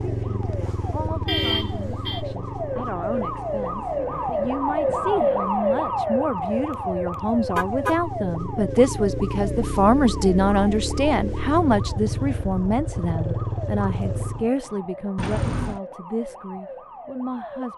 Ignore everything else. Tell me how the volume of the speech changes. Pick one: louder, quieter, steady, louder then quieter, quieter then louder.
louder then quieter.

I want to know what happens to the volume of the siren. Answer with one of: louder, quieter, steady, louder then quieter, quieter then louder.
louder then quieter.